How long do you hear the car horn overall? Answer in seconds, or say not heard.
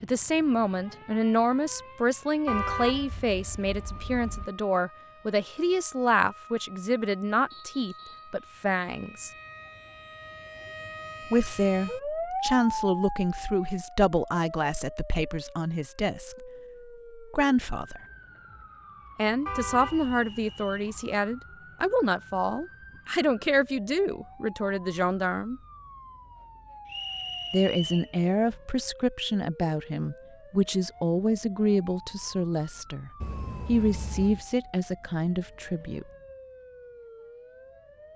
4 s.